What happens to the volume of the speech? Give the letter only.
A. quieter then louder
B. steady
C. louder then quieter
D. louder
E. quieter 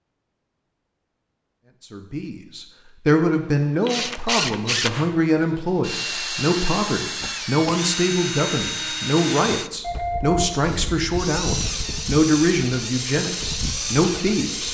B.